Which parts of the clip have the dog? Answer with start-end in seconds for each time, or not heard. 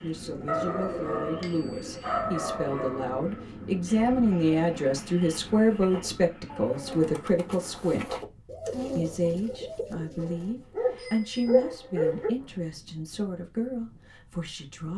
0.5-3.1, 10.2-12.3.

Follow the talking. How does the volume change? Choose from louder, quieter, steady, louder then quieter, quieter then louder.
louder then quieter.